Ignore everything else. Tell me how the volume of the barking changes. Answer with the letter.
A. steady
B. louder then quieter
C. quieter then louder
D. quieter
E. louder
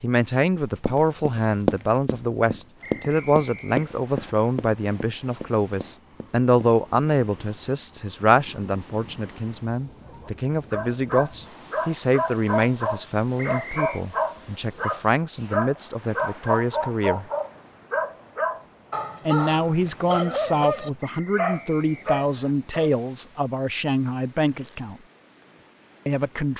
A.